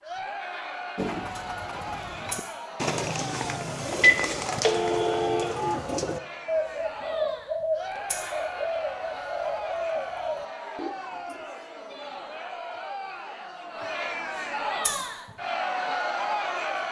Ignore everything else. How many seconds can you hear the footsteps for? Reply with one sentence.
You can't hear the footsteps here.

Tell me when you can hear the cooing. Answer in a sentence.
You can hear the cooing from 0.9 to 11.4 s.